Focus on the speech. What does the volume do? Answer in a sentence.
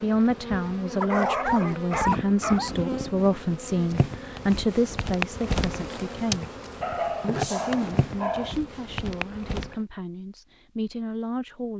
The volume of the speech goes down.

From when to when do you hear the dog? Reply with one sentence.
The dog can be heard from 1.0 to 2.8 s and from 6.8 to 8.6 s.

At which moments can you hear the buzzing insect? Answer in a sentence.
The buzzing insect can be heard from 0.0 to 9.8 s.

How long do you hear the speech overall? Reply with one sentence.
The speech can be heard for 11 seconds in total.